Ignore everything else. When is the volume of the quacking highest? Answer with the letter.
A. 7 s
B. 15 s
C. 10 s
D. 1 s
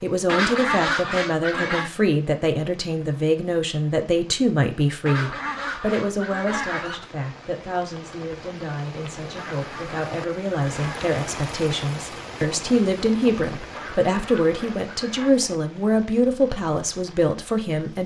D.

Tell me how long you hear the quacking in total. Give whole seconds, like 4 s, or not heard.
7 s.